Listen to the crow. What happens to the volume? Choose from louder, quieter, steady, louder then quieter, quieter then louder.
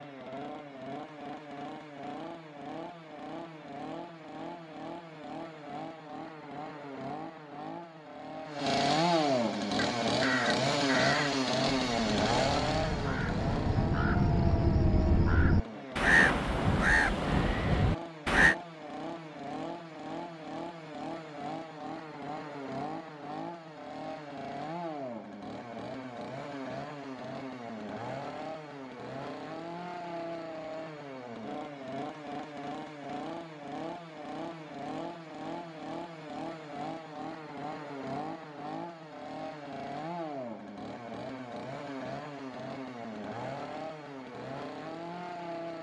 louder.